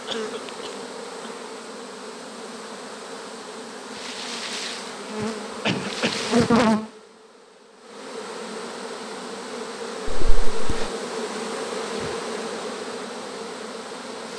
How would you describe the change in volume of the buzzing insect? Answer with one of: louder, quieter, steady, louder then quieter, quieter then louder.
louder then quieter.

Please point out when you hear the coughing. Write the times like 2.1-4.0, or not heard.
0.1-1.3, 5.7-6.2, 10.1-10.9.